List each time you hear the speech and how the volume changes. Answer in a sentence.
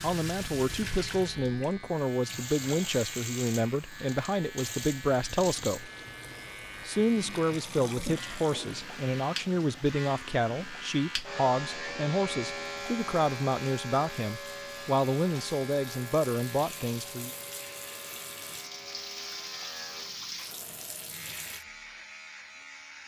You can hear the speech from 0.0 to 5.9 s, at a steady volume; and from 6.8 to 17.3 s, at a steady volume.